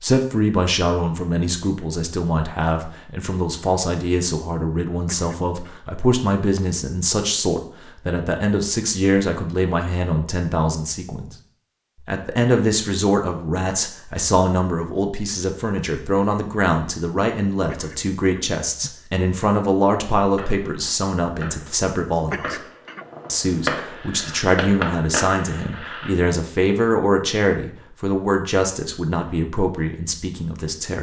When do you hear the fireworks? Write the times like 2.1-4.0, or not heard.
20.2-26.1.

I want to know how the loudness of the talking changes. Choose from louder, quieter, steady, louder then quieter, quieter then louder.
steady.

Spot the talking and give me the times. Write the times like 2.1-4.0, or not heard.
0.0-11.3, 12.0-22.6, 23.2-30.9.